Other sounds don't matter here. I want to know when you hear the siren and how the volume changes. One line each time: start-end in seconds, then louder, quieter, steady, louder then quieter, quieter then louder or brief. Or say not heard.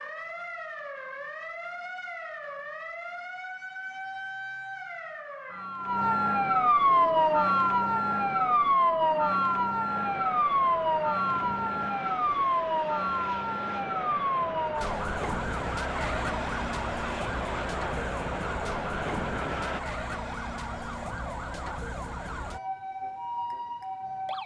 0.0-24.4 louder then quieter.